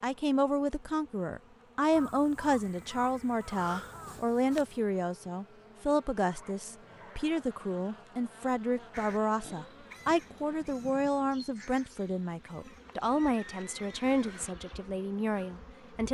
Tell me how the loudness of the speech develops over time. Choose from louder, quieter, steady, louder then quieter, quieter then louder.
steady.